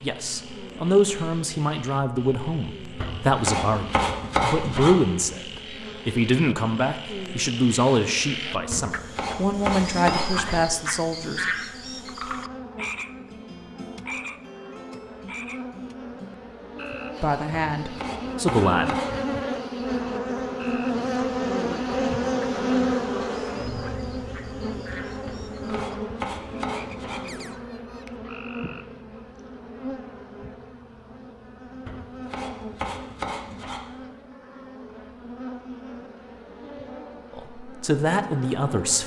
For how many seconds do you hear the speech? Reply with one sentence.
The speech can be heard for 15 seconds in total.